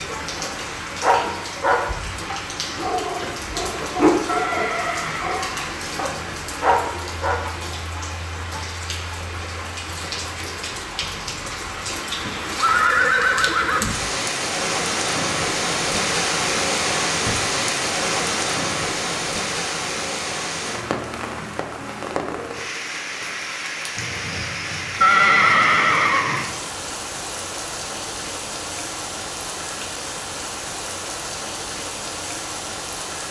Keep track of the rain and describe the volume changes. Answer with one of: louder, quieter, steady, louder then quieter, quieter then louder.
louder then quieter.